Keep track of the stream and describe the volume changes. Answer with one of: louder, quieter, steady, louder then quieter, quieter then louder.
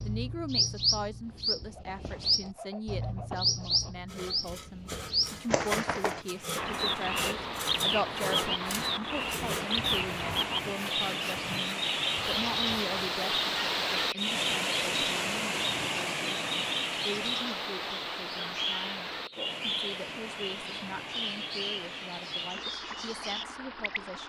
louder then quieter.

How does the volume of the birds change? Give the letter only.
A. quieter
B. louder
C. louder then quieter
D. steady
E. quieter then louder
A.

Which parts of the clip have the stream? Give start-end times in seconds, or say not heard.
6.2-24.2.